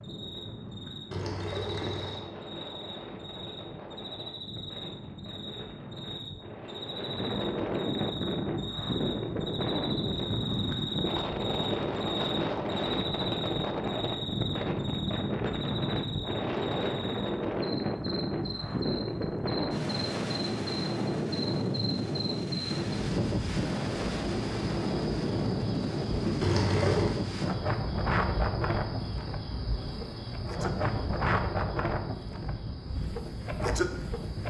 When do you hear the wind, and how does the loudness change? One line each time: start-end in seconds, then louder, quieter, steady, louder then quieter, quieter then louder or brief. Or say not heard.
0.0-34.4 louder.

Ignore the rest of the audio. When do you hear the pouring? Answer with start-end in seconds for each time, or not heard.
1.1-2.2, 26.4-27.1.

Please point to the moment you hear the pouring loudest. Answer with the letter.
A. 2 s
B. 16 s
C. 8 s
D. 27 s
D.